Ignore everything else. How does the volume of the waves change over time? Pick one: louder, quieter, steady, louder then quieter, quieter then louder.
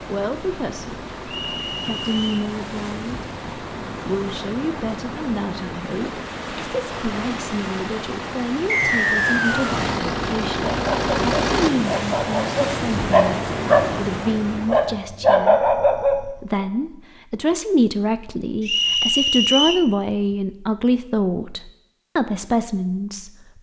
louder.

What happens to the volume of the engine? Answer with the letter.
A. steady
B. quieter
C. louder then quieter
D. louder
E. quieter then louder
D.